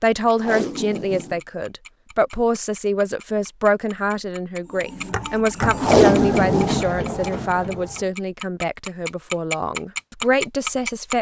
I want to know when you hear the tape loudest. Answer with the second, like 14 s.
6 s.